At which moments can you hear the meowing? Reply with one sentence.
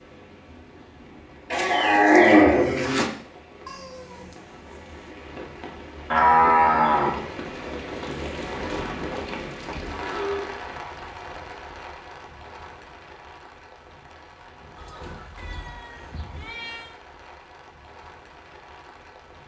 You can hear the meowing from 3.6 to 5.2 s and from 15.3 to 16.9 s.